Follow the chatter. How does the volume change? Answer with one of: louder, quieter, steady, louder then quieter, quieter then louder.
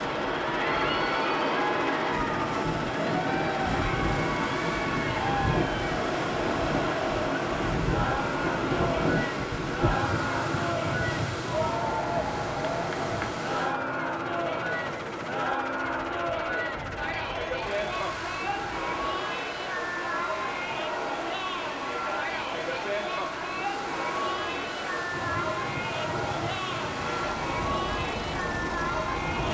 steady.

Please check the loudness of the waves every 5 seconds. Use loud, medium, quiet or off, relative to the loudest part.
loud, loud, medium, quiet, quiet, medium.